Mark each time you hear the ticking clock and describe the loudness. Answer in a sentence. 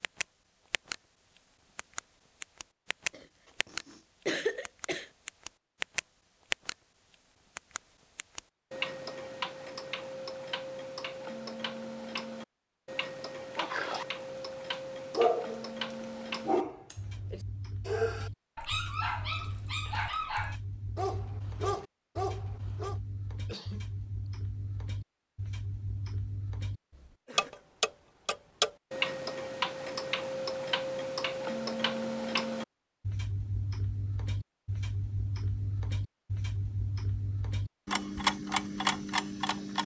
The ticking clock can be heard from 0.0 to 39.8 s, getting quieter then louder.